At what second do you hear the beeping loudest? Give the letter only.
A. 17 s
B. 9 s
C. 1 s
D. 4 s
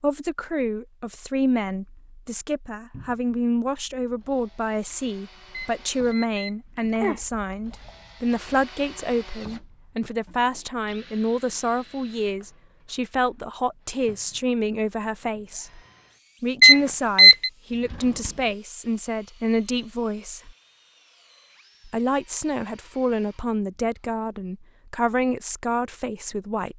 A.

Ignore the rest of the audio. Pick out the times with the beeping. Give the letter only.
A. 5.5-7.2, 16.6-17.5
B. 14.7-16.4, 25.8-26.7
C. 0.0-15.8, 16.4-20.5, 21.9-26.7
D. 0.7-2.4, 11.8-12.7
A.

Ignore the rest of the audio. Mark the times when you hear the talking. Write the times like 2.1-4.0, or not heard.
0.0-15.8, 16.4-20.5, 21.9-26.7.